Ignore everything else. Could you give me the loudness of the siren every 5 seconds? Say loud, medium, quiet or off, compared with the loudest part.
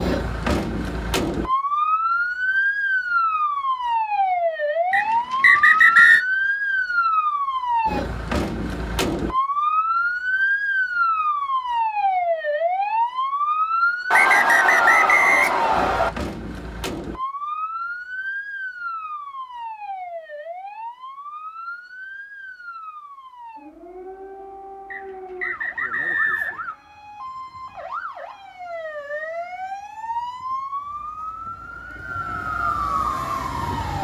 loud, loud, loud, medium, quiet, quiet, medium.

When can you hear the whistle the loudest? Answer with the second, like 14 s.
6 s.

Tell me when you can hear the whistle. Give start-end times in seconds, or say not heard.
4.9-6.2, 14.1-16.1, 24.9-26.7.